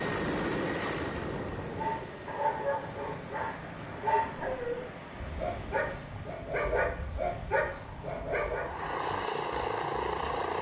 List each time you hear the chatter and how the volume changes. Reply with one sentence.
You can't hear the chatter here.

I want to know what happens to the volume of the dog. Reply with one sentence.
The loudness of the dog stays about the same.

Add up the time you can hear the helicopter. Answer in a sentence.
The helicopter can be heard for 6 seconds in total.